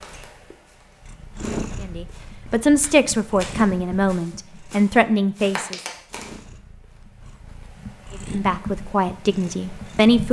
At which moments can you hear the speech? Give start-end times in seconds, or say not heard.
1.8-5.8, 8.3-10.2.